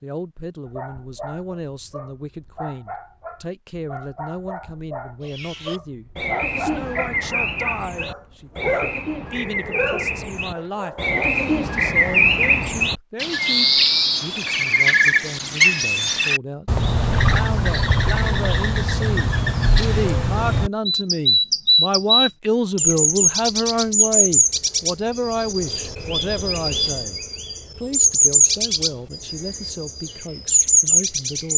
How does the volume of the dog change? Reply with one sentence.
The volume of the dog goes up.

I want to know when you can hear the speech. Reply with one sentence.
You can hear the speech from 0.0 to 31.5 s.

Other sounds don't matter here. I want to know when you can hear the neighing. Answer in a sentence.
The neighing can't be heard in this clip.